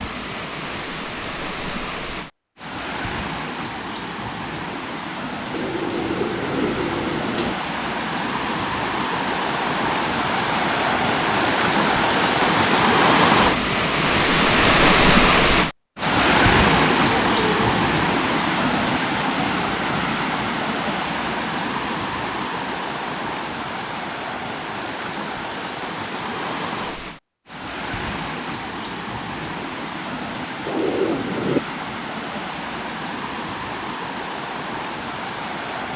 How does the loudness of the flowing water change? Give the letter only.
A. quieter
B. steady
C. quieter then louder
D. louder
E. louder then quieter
E.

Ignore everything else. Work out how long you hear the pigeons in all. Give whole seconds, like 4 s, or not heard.
5 s.